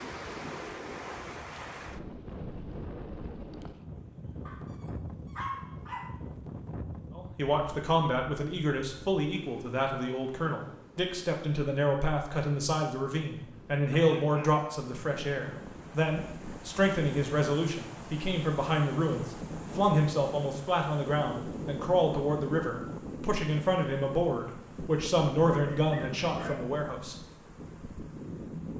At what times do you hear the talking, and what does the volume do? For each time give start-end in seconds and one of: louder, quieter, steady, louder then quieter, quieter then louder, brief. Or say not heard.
7.2-27.1 steady.